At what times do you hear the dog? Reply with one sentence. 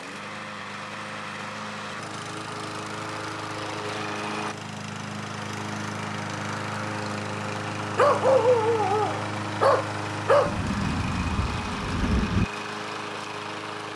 The dog can be heard from 8.0 to 10.6 s.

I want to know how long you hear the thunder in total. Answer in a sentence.
You can hear the thunder for 2 seconds altogether.